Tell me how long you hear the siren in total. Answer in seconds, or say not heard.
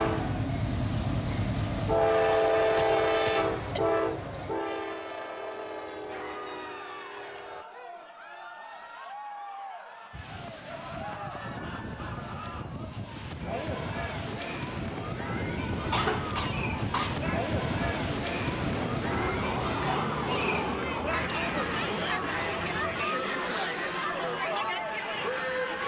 16 s.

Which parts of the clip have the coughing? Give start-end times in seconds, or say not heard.
2.8-3.9, 15.9-17.1.